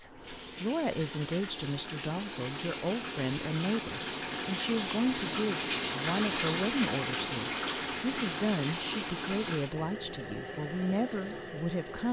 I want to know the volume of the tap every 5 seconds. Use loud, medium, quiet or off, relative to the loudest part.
medium, loud, medium.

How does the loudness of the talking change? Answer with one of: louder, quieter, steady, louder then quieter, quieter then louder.
steady.